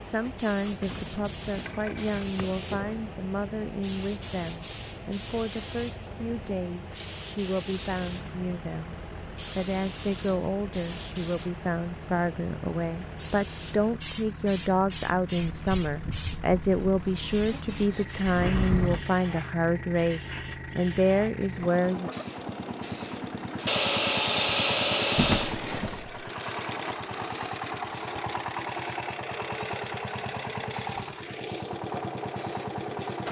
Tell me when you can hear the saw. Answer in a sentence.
The saw can be heard from 1.5 to 3.0 s, from 15.4 to 18.2 s and from 23.6 to 25.6 s.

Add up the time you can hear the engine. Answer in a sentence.
The engine can be heard for 33 seconds in total.